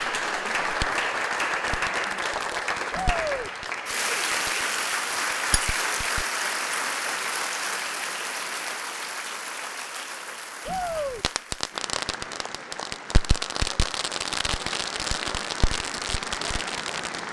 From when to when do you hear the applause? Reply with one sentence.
The applause can be heard from 0.0 to 17.2 s.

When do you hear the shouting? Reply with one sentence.
You can hear the shouting from 2.9 to 3.5 s and from 10.7 to 11.2 s.